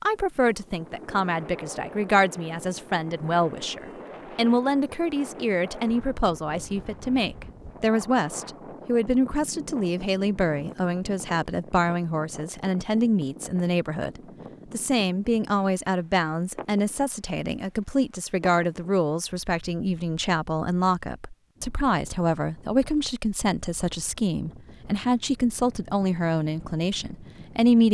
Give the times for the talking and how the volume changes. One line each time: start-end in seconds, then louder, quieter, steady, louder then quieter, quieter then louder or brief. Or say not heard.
0.0-27.8 steady.